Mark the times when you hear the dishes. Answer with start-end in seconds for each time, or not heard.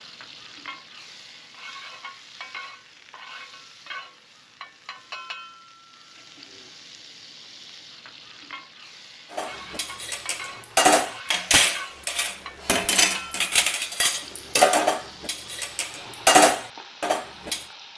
9.3-17.6.